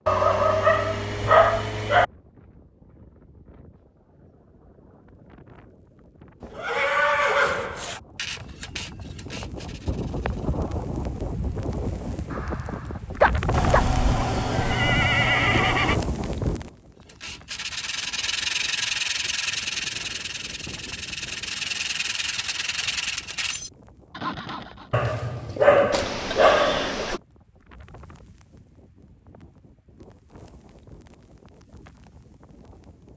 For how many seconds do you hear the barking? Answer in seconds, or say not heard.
6 s.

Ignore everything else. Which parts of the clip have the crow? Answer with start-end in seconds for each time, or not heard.
not heard.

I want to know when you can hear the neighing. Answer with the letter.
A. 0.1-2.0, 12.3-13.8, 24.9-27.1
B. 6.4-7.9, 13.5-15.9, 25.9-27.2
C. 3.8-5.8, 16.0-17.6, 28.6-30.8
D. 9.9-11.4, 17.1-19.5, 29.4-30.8
B.